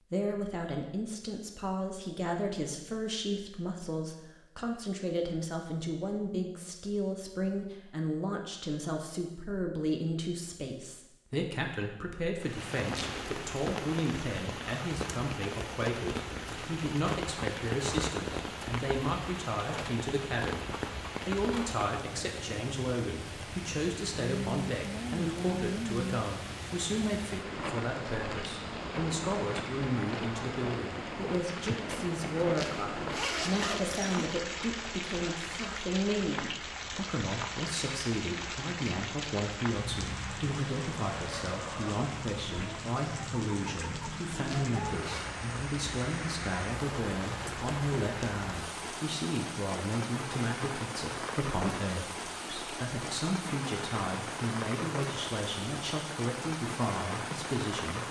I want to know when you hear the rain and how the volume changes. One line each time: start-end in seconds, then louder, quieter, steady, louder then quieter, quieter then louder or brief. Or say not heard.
12.3-58.0 steady.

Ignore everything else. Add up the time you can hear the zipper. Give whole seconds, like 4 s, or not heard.
4 s.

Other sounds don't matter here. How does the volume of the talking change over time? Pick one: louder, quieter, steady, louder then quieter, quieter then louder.
steady.